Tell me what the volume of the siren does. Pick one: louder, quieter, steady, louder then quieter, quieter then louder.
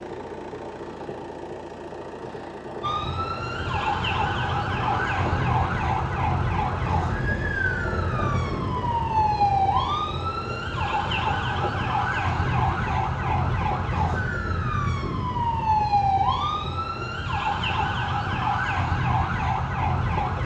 steady.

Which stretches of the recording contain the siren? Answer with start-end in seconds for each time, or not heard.
2.8-20.4.